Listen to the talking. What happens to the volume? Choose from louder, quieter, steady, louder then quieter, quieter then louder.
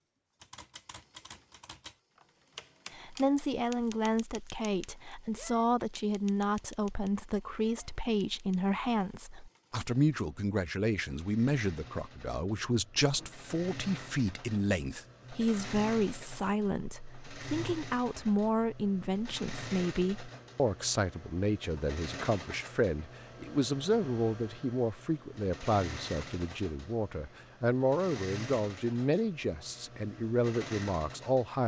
steady.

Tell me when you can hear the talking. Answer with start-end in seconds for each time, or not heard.
2.9-31.6.